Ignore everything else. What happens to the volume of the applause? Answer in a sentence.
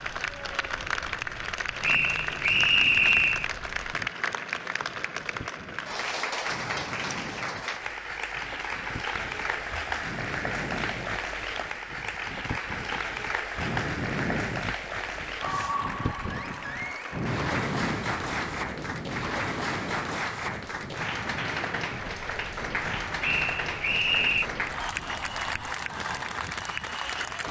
The volume of the applause stays about the same.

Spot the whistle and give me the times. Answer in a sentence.
You can hear the whistle from 1.8 to 3.5 s and from 23.2 to 24.5 s.